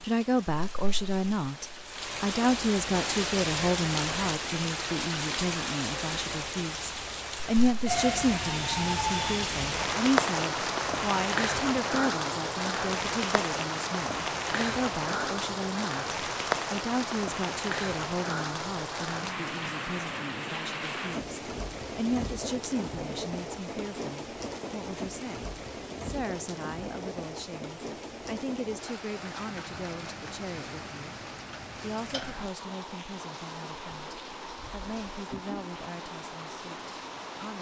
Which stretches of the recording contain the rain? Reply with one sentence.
The rain can be heard from 0.0 to 37.5 s.